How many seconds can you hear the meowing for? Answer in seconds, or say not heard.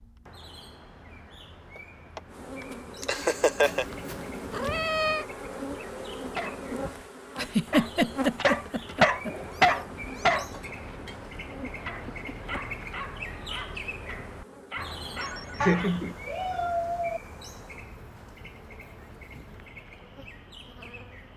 4 s.